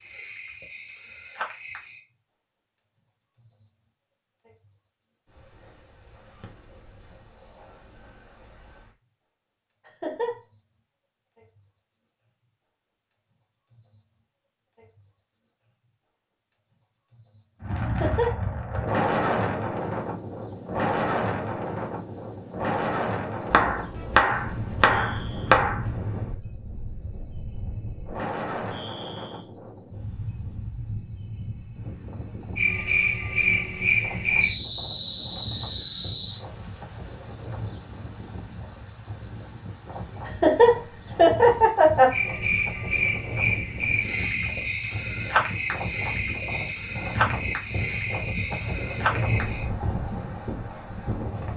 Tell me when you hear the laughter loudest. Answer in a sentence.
The loudest moment of the laughter is at 41 seconds.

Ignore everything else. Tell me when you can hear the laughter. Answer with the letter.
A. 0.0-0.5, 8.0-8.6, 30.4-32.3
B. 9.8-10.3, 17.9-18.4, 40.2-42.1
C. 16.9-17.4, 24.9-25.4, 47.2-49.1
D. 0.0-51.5
B.